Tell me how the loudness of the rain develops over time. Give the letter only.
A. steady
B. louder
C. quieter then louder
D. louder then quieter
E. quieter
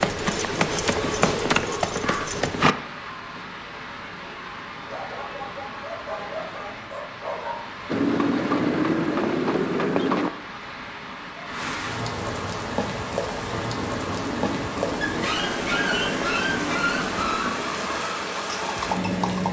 B.